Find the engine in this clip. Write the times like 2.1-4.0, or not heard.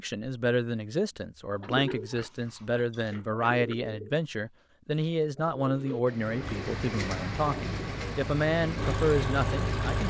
6.2-10.0.